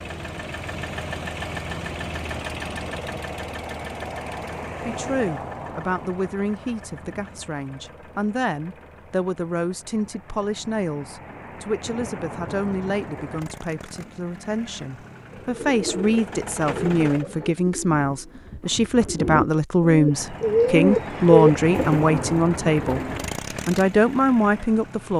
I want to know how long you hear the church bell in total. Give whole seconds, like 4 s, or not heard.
not heard.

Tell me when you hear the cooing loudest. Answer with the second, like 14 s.
21 s.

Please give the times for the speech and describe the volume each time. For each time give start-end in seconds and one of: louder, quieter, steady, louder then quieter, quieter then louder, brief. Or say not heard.
4.8-23.0 louder
23.6-25.1 brief.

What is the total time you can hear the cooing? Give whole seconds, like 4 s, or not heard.
8 s.